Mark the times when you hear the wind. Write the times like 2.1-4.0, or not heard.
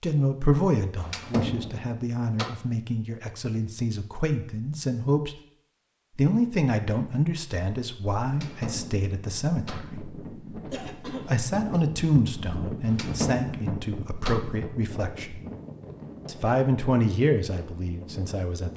8.2-18.7.